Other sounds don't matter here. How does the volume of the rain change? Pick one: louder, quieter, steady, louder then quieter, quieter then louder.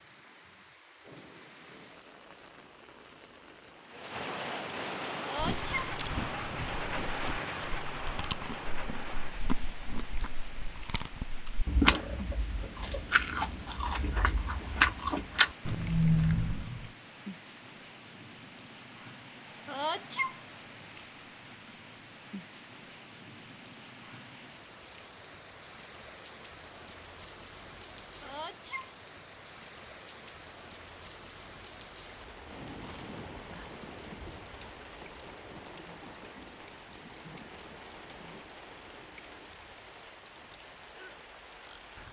quieter.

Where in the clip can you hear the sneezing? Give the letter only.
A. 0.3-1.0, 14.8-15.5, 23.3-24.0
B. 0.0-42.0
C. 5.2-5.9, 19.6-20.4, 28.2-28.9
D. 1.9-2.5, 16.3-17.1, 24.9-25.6
C.